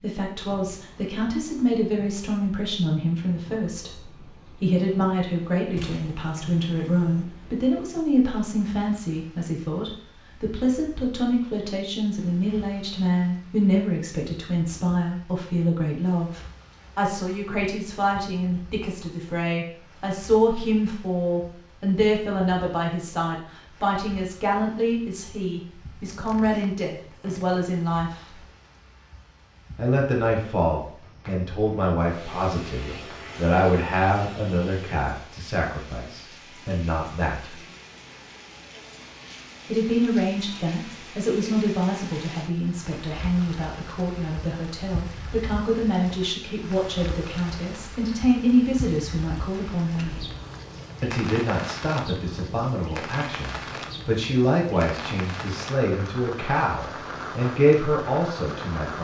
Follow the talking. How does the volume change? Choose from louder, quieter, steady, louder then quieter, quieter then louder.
steady.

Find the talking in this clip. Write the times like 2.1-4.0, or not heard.
0.0-28.2, 29.8-37.5, 39.6-50.2, 51.0-58.9.